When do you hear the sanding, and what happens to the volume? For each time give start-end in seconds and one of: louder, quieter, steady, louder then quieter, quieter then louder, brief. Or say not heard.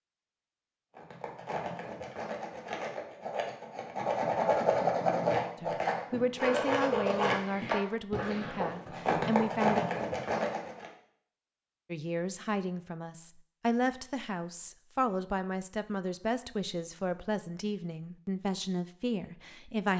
0.9-10.9 louder.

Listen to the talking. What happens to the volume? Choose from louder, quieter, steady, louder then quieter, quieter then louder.
steady.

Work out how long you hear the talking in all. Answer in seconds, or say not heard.
12 s.